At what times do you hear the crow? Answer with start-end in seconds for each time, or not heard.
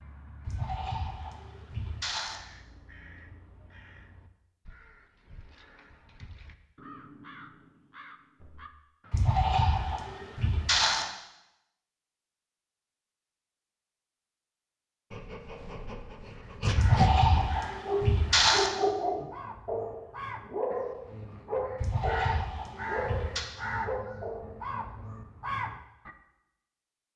0.0-10.5, 15.8-26.1.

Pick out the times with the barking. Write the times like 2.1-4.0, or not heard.
15.1-24.6.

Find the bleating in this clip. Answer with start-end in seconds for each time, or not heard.
0.5-2.4, 9.1-11.1, 16.8-18.7, 21.8-23.4.